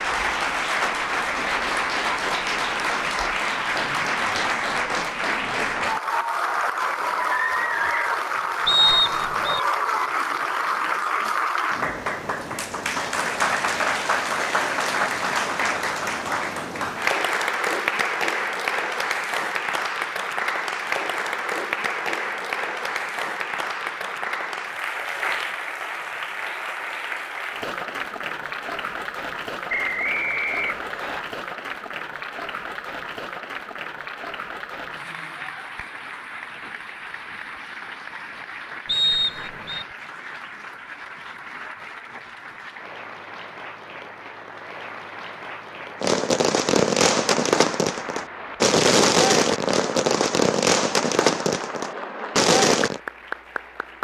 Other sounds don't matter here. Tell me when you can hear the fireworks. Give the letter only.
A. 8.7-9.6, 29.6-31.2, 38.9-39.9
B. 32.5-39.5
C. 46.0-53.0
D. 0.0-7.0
C.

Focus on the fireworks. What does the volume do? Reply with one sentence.
The loudness of the fireworks stays about the same.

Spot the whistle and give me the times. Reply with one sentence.
The whistle can be heard from 8.7 to 9.6 s, from 29.6 to 31.2 s and from 38.9 to 39.9 s.